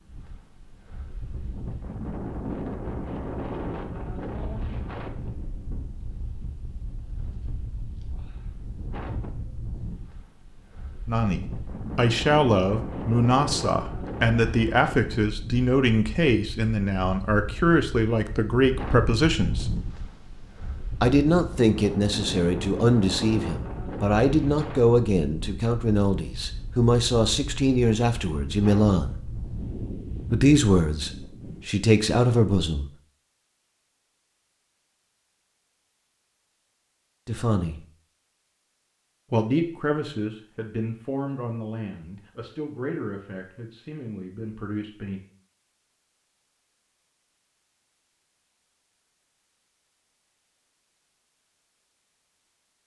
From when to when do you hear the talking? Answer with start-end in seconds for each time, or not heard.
11.1-19.7, 21.0-29.1, 30.3-32.9, 37.2-37.8, 39.3-45.2.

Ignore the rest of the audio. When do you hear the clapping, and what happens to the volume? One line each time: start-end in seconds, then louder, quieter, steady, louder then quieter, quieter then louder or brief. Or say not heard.
not heard.